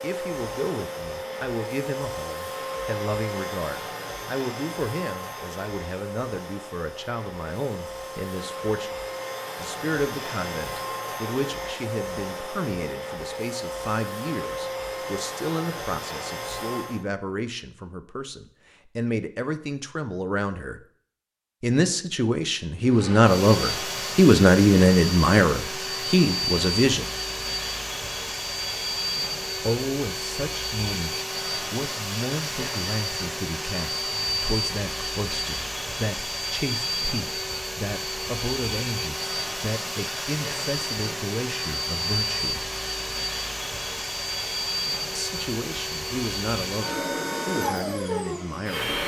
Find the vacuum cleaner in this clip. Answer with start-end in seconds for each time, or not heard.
0.0-17.1, 22.9-49.0.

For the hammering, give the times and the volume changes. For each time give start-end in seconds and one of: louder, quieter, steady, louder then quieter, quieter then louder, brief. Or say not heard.
not heard.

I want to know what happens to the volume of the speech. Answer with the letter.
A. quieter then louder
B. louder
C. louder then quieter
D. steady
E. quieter
C.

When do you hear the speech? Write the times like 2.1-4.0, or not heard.
0.0-8.9, 9.6-20.8, 21.6-27.1, 29.6-42.7, 45.1-49.0.